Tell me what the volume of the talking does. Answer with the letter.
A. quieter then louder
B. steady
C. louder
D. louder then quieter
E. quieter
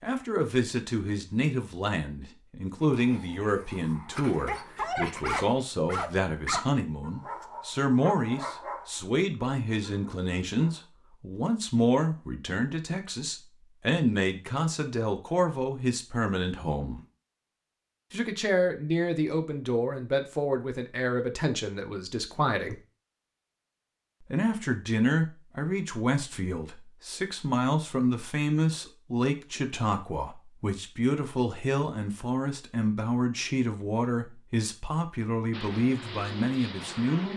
B.